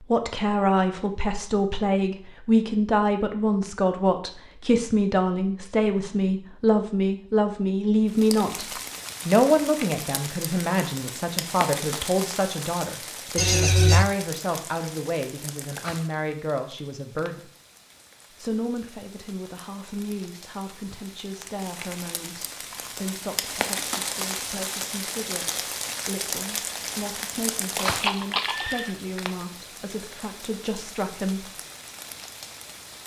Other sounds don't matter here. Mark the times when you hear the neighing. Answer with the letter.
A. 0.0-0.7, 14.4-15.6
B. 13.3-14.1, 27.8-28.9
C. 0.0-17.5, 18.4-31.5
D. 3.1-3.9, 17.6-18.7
B.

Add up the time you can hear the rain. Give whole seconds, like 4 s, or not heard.
25 s.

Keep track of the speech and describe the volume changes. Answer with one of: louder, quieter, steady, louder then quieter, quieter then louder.
quieter.